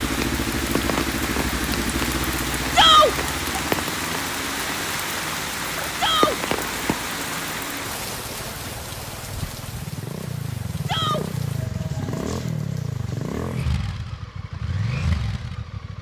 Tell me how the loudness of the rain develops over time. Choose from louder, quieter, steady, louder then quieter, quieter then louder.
quieter.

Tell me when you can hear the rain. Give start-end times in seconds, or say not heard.
0.0-13.7.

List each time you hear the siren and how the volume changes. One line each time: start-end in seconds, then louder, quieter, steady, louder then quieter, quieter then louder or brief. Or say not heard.
not heard.